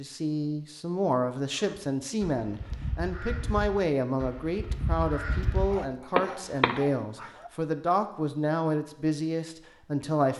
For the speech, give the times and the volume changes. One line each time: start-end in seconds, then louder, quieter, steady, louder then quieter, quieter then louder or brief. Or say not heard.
0.0-10.3 steady.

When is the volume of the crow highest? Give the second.
6 s.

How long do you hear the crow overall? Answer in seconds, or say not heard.
5 s.